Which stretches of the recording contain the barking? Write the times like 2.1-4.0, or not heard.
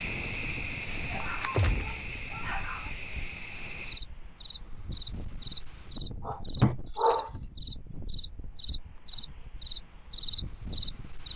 0.9-3.0, 6.2-7.3.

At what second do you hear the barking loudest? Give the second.
7 s.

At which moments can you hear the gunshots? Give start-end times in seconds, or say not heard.
1.5-2.0.